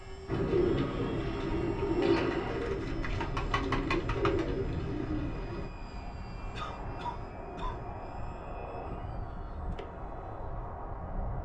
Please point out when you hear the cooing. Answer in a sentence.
You can hear the cooing from 0.2 to 5.7 s.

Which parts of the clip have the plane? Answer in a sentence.
The plane can be heard from 0.0 to 11.4 s.